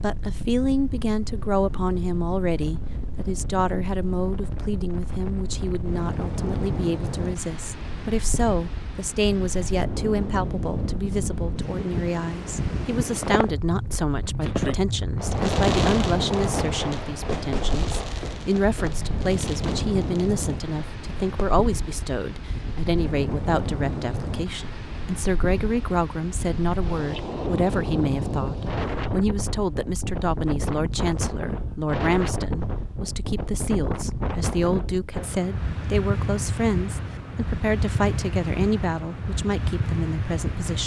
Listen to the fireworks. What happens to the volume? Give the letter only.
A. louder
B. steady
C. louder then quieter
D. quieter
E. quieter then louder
D.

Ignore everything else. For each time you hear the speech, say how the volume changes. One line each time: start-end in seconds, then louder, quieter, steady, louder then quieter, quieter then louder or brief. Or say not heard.
0.0-40.8 steady.